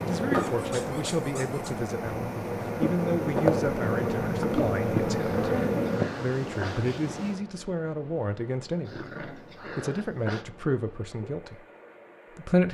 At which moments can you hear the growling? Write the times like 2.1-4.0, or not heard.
0.3-1.8, 5.2-7.0, 8.8-10.4.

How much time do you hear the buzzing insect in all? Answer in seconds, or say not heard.
6 s.